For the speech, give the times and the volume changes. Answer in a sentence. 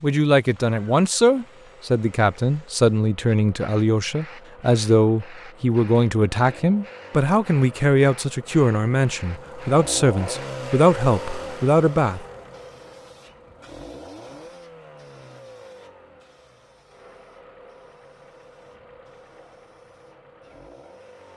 The speech can be heard from 0.0 to 12.2 s, at a steady volume.